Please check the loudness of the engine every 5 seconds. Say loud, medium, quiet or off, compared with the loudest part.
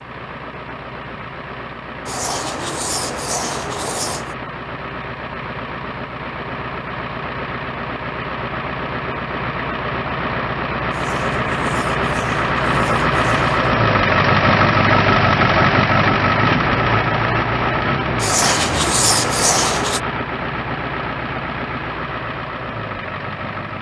quiet, medium, loud, loud, medium.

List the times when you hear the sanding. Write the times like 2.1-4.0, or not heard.
2.0-4.3, 10.9-13.6, 18.1-20.0.